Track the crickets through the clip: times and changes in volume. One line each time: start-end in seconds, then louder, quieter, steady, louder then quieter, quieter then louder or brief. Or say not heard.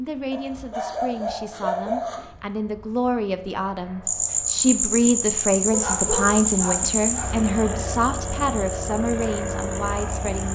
4.0-10.5 quieter.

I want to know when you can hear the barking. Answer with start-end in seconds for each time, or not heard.
0.3-2.3, 5.7-7.3.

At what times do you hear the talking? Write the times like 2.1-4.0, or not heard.
0.0-10.5.